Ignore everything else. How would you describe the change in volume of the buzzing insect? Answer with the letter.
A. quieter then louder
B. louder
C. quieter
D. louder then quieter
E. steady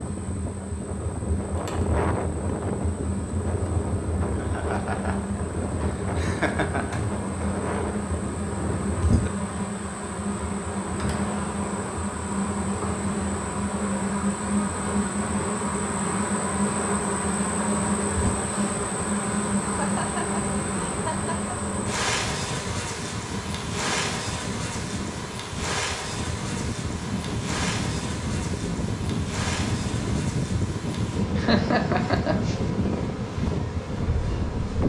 D.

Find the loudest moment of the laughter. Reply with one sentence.
The loudest moment of the laughter is at 32 seconds.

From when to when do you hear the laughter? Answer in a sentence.
The laughter can be heard from 4.3 to 5.2 s, from 6.2 to 7.0 s, from 19.6 to 21.4 s and from 31.4 to 32.5 s.